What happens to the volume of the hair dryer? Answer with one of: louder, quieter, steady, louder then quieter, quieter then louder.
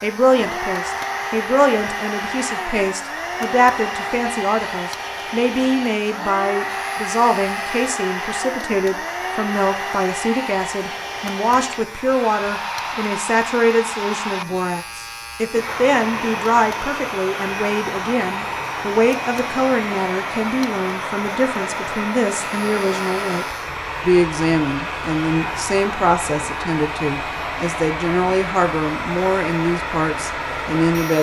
steady.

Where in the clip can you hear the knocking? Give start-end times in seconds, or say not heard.
not heard.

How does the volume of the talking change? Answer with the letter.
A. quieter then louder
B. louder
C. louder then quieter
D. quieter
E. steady
E.